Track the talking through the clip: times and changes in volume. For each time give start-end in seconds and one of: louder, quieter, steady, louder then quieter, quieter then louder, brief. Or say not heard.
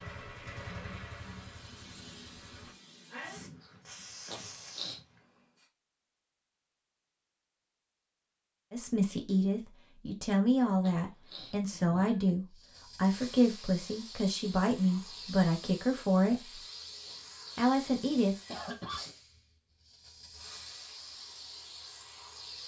8.7-16.6 steady
17.6-18.4 brief.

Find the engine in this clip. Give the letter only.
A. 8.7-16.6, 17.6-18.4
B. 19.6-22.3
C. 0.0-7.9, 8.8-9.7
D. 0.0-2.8
D.